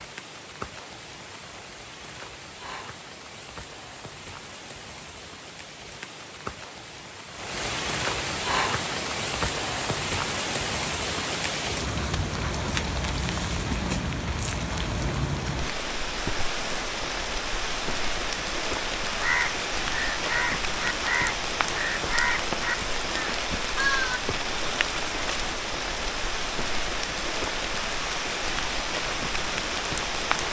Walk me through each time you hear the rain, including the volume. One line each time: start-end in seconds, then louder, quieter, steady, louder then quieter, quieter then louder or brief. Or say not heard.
0.0-30.4 louder.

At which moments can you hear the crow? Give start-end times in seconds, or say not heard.
19.1-24.2.